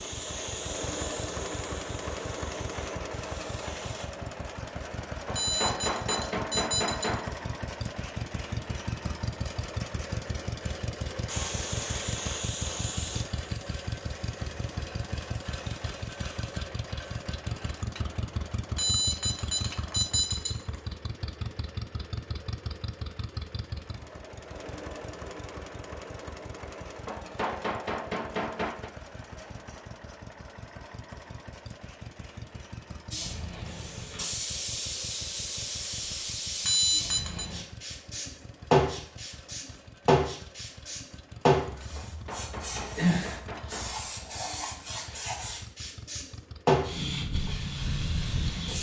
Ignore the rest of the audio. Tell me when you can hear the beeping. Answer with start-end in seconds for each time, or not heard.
5.3-7.3, 18.8-20.8, 36.6-37.5.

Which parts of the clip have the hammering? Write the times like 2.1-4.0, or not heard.
5.2-7.3, 27.1-28.9, 42.0-44.0.